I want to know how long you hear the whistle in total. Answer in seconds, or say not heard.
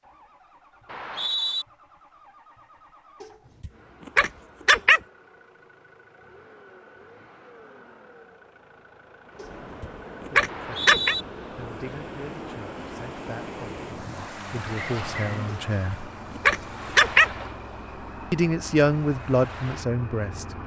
2 s.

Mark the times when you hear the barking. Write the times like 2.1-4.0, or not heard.
3.2-5.0, 9.4-11.2, 15.5-17.3.